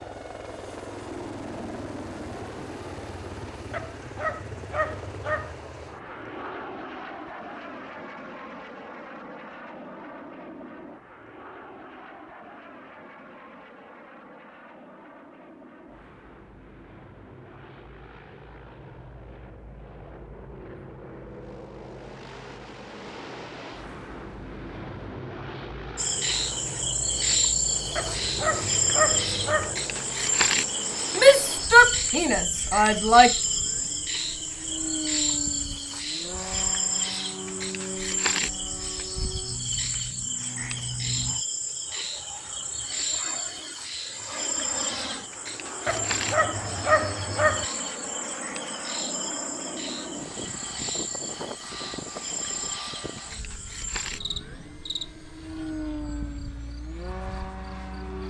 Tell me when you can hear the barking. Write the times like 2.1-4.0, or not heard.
3.7-5.5, 27.9-29.8, 45.9-47.6.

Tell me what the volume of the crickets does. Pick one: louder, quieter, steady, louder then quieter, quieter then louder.
quieter.